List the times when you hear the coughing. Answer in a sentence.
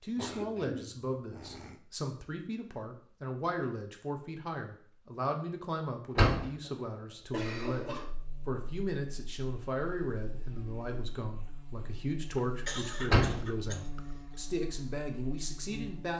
The coughing can be heard from 0.1 to 1.8 s, from 6.7 to 8.2 s and from 12.3 to 14.0 s.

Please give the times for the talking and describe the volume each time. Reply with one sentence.
You can hear the talking from 0.0 to 16.1 s, at a steady volume.